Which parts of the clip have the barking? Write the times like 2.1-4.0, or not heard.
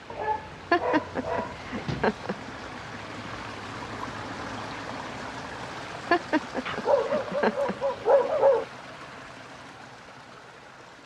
0.1-2.1, 6.7-8.7.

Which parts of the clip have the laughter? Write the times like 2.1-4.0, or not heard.
0.7-2.4, 6.1-7.8.